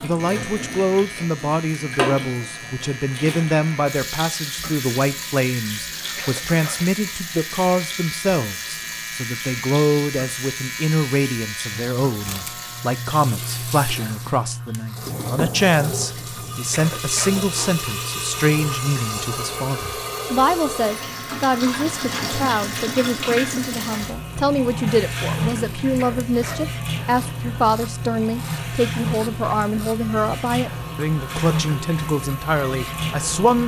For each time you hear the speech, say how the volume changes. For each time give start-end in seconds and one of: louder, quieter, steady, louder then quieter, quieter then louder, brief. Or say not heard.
0.0-33.6 steady.